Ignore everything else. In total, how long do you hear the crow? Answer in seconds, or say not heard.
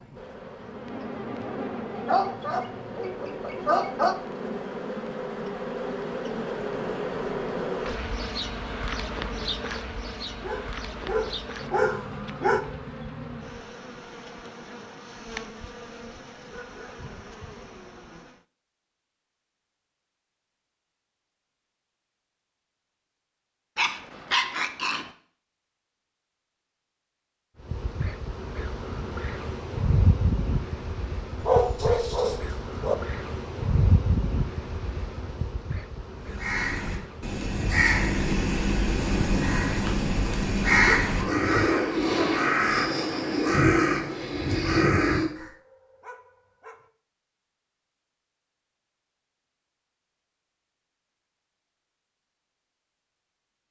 9 s.